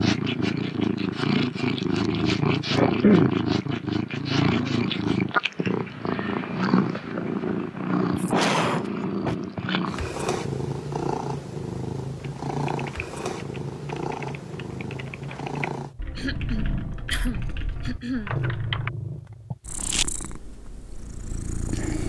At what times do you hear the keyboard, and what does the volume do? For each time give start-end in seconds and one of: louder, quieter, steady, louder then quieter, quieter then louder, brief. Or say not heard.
12.2-18.9 steady.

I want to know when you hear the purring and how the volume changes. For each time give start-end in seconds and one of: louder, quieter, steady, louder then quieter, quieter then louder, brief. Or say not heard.
0.0-22.0 quieter.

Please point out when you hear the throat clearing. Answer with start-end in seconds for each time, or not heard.
2.8-3.4, 8.2-9.3, 16.1-18.3.